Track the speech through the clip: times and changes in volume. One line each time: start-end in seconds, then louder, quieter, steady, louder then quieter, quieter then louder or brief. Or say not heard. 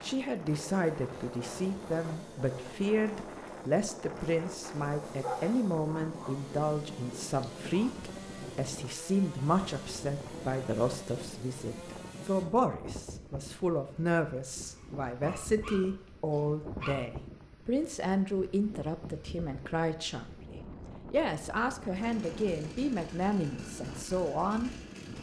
0.0-25.1 steady.